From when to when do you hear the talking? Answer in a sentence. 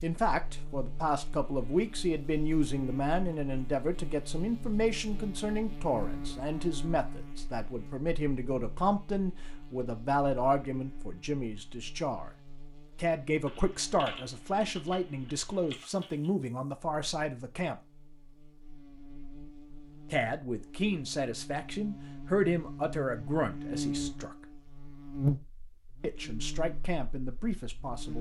The talking can be heard from 0.0 to 12.3 s, from 12.9 to 17.8 s, from 20.1 to 24.4 s and from 26.0 to 28.1 s.